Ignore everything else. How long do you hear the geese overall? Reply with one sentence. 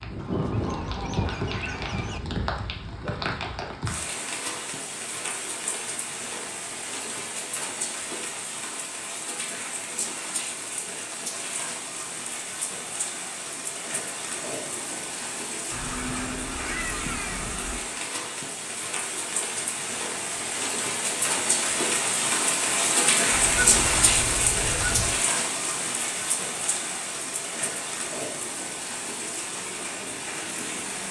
The geese can be heard for 6 seconds in total.